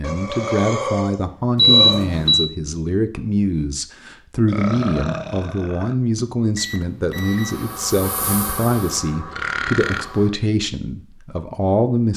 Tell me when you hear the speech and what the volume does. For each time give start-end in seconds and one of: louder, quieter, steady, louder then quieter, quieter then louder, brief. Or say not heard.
0.0-12.1 steady.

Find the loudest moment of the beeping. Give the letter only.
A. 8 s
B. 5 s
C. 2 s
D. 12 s
C.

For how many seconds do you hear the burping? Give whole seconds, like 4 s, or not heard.
4 s.